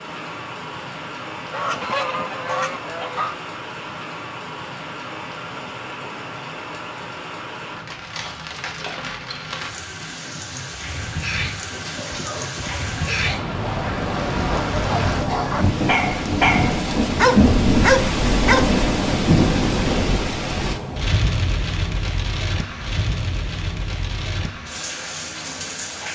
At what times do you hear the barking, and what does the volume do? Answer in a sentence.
The barking can be heard from 11.5 to 18.6 s, getting louder.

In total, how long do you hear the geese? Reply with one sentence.
The geese can be heard for 2 seconds in total.